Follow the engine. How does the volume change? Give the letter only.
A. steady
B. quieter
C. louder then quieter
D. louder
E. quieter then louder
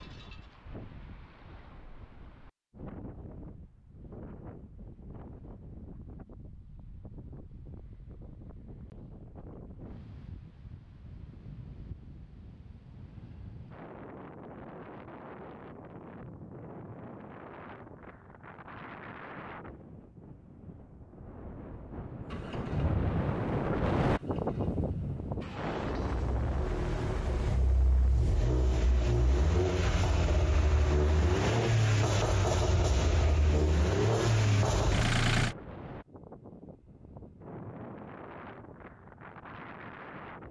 D.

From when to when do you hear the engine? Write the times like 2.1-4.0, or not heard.
22.3-35.5.